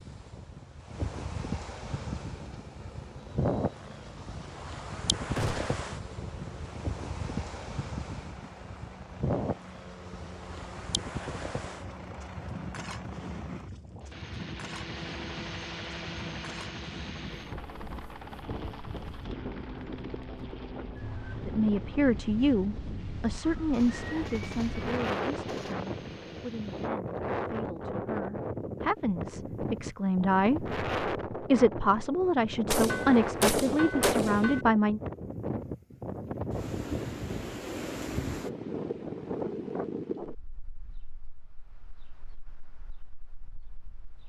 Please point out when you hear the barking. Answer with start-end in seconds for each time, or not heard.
not heard.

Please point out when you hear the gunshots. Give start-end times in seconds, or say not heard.
5.3-5.8, 23.7-25.8, 32.7-34.6.